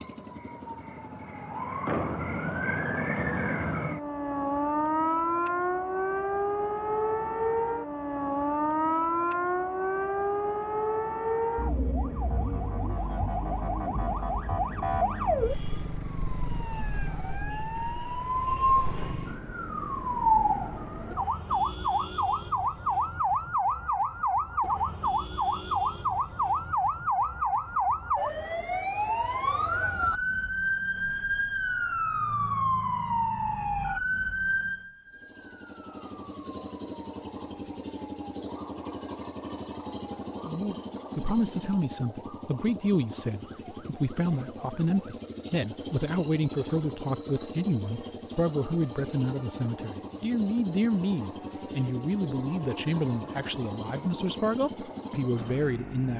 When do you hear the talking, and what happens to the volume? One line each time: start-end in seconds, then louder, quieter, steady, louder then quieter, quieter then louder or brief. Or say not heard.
40.5-56.1 steady.